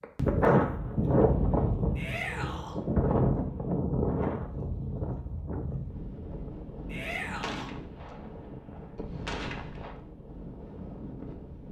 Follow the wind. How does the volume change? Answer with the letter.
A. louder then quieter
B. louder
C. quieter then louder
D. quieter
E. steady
D.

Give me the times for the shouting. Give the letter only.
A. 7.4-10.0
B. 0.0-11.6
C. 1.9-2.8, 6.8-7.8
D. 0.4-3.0
C.